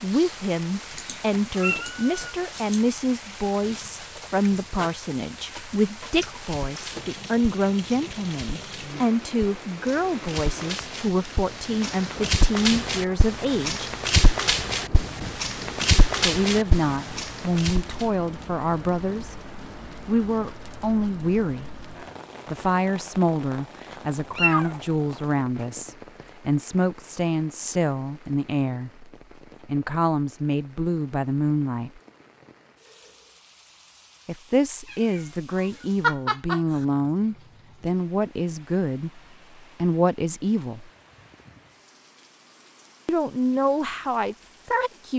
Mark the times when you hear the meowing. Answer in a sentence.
You can hear the meowing from 0.9 to 2.8 s, from 23.9 to 25.6 s and from 34.9 to 36.9 s.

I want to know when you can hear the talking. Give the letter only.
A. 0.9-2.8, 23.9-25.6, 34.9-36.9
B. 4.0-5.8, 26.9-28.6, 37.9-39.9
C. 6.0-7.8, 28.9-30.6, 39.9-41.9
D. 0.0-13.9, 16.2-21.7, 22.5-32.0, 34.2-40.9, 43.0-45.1
D.